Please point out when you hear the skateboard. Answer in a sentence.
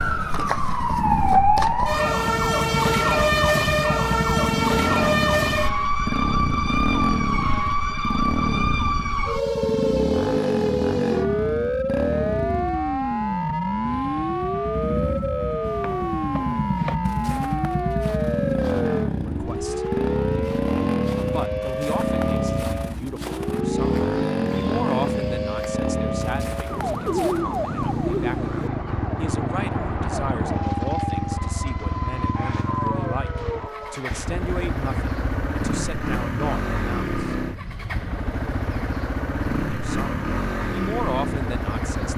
You can't hear the skateboard here.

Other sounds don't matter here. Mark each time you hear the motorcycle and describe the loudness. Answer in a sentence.
You can hear the motorcycle from 0.0 to 42.1 s, at a steady volume.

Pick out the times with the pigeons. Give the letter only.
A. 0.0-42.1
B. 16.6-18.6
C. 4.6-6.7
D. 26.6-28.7
D.